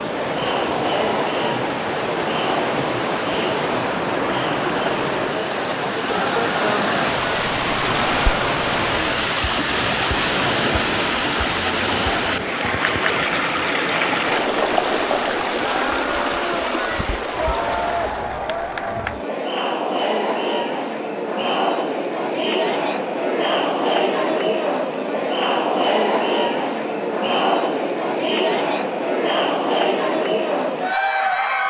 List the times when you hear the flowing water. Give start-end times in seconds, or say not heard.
0.0-18.4.